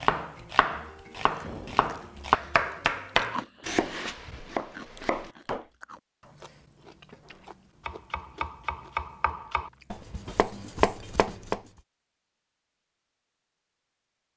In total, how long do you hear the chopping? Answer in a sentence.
The chopping can be heard for 10 seconds in total.